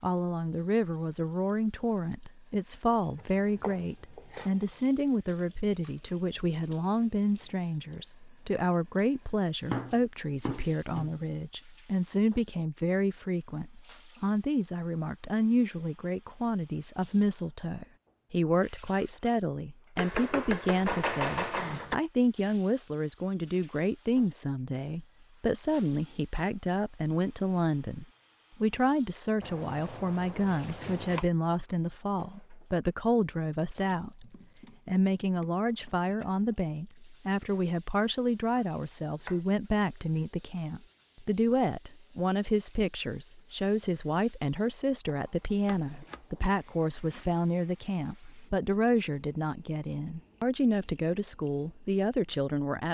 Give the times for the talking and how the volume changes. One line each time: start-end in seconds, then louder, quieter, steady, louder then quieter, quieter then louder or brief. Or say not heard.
0.0-34.2 steady
34.9-52.9 steady.